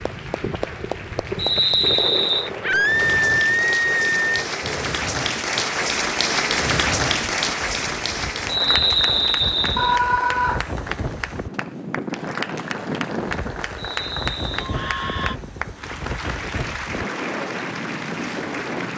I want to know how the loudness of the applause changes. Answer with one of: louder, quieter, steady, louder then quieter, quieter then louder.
louder then quieter.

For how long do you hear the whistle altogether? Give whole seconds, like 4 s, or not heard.
4 s.